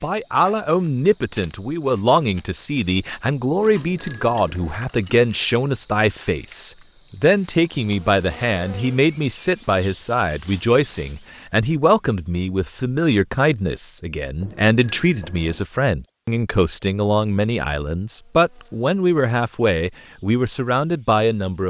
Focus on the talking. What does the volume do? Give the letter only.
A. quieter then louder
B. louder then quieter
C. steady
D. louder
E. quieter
C.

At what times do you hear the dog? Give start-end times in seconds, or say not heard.
not heard.